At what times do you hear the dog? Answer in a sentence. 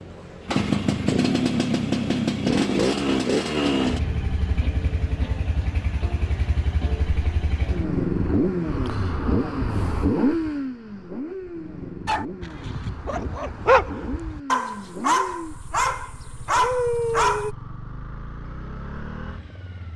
The dog can be heard from 12.1 to 17.6 s.